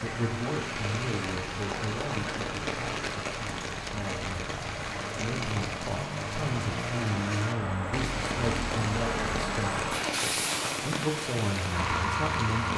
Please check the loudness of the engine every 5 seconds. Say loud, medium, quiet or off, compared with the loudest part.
medium, loud, loud.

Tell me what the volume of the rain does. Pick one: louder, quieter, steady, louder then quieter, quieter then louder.
steady.